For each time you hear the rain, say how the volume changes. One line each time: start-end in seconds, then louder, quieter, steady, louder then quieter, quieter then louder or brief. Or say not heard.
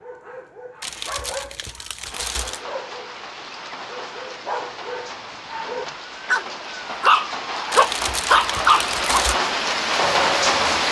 1.9-10.8 louder.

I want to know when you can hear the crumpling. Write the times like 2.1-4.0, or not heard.
0.8-2.6, 7.7-9.4.